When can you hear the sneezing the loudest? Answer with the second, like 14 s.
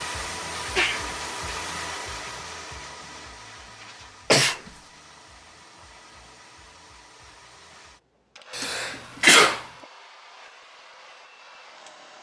9 s.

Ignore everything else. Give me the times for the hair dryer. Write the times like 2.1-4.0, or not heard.
0.0-12.1.